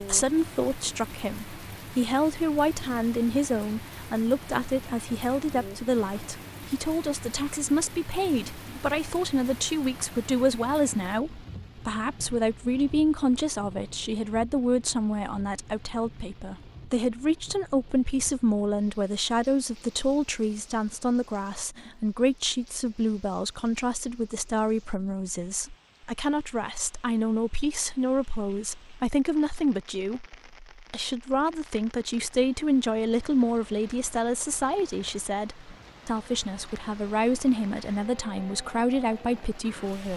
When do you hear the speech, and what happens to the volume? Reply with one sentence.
The speech can be heard from 0.0 to 40.1 s, at a steady volume.